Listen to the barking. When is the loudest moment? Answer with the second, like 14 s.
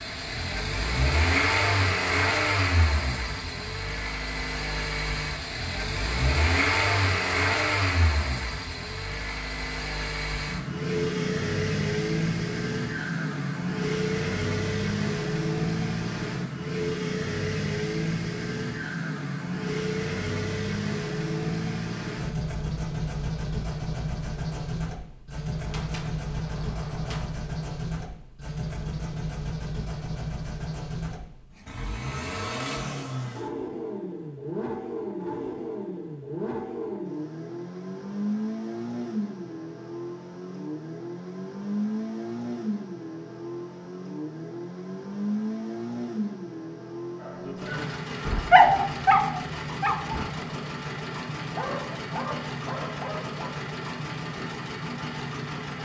49 s.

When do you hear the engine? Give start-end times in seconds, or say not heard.
0.0-55.7.